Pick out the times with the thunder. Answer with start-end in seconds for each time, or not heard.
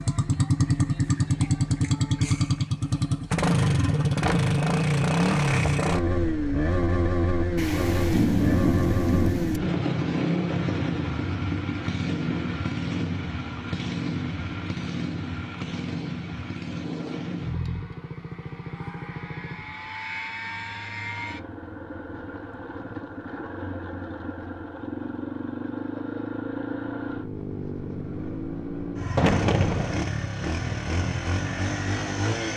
7.5-9.6, 29.1-29.9.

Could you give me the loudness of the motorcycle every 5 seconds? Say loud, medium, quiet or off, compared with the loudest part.
loud, loud, medium, medium, quiet, medium, medium.